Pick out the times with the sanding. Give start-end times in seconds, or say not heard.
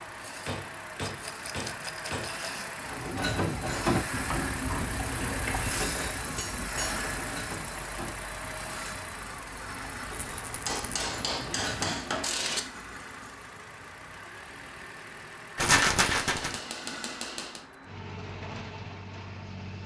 not heard.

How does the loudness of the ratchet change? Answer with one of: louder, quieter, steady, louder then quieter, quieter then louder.
quieter then louder.